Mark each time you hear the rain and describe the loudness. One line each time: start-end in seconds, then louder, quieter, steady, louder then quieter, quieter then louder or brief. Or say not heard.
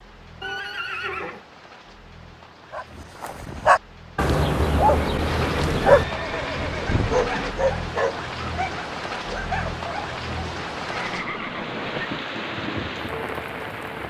0.0-14.0 louder.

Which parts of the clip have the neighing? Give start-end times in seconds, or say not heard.
0.4-1.4, 4.9-7.5, 10.9-12.1.